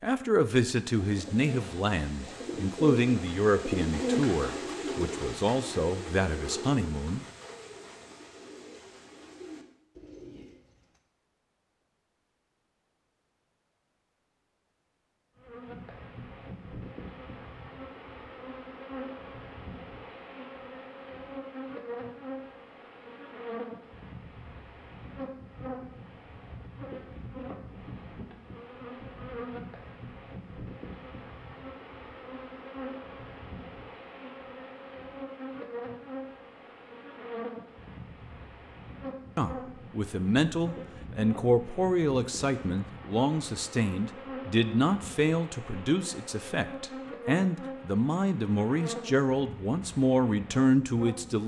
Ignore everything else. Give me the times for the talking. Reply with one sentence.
You can hear the talking from 0.0 to 7.2 s and from 39.4 to 51.4 s.